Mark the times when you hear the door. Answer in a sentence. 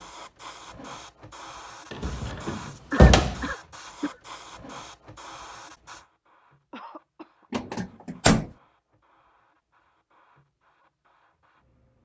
You can hear the door from 1.9 to 3.5 s and from 7.5 to 8.4 s.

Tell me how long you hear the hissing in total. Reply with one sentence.
The hissing can be heard for 12 seconds in total.